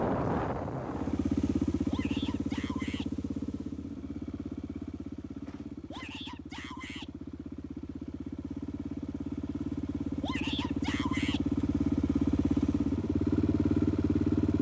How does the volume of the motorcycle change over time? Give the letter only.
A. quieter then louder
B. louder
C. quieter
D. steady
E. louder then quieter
A.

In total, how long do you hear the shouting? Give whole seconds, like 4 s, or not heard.
4 s.